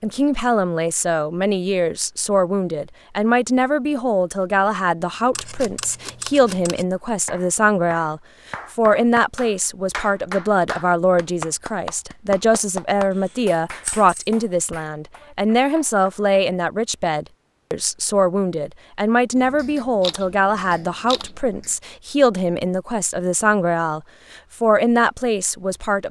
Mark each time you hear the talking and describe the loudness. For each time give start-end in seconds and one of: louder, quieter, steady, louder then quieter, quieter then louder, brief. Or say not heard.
0.0-26.0 steady.